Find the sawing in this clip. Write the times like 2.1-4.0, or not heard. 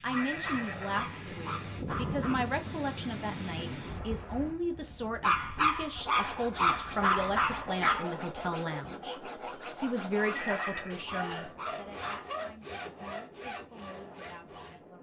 6.0-14.8.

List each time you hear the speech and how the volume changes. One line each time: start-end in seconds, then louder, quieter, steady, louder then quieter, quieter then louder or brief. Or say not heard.
0.0-14.9 quieter.